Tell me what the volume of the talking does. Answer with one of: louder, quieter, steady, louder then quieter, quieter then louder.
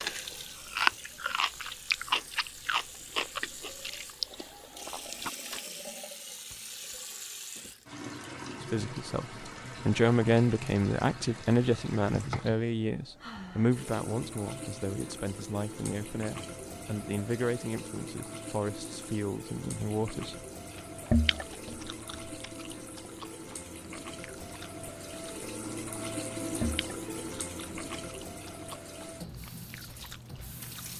quieter.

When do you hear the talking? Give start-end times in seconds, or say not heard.
8.6-20.4.